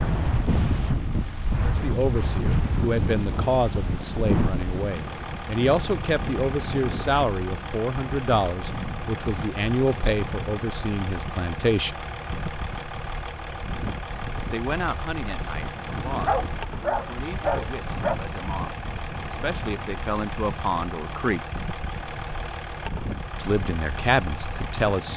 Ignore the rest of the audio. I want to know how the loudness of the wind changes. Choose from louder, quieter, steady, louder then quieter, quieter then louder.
quieter.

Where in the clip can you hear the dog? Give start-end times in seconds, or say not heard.
16.2-18.2.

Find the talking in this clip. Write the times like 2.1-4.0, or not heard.
1.6-11.9, 14.5-21.4, 23.4-25.1.